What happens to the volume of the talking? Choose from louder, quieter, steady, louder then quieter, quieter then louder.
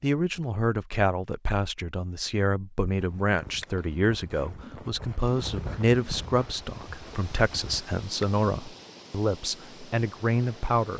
steady.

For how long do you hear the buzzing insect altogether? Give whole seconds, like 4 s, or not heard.
not heard.